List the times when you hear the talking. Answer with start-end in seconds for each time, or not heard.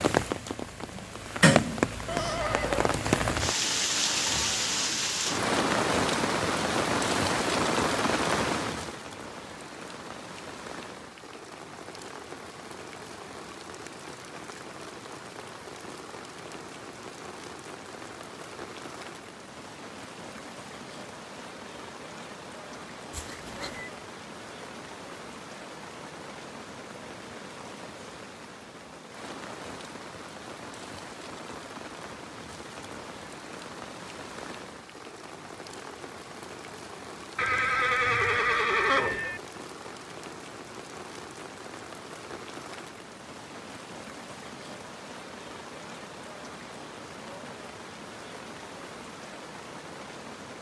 not heard.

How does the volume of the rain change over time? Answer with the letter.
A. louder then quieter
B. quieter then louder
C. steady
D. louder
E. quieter
E.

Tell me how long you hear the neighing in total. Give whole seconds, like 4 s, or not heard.
4 s.